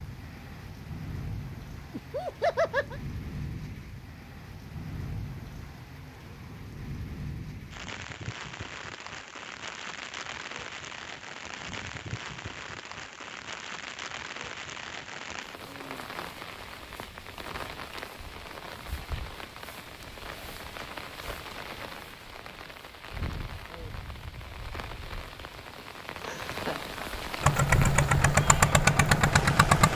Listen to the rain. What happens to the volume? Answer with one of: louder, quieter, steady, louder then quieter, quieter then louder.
steady.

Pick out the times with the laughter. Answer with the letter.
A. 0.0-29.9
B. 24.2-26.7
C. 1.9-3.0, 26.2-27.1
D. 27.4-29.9
C.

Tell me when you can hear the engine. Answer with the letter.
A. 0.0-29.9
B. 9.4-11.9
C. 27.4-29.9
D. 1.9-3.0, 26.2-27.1
C.